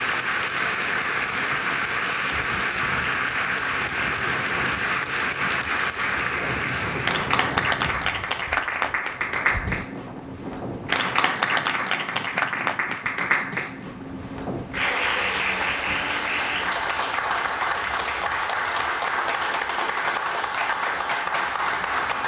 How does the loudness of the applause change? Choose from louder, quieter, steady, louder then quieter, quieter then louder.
steady.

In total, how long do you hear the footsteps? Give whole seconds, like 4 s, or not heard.
not heard.